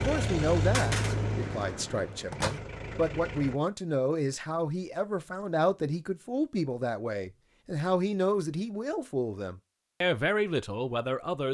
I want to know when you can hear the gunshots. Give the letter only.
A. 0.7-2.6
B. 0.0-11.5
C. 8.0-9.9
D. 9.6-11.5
A.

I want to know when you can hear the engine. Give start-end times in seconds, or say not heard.
0.0-3.6.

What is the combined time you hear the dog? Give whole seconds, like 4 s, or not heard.
not heard.